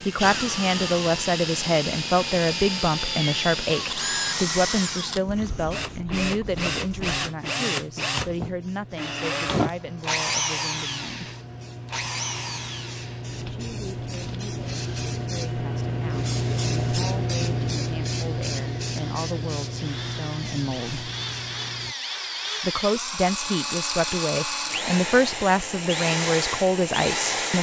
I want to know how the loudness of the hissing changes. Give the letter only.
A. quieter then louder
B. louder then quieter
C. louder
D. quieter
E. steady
C.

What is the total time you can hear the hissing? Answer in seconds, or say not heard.
22 s.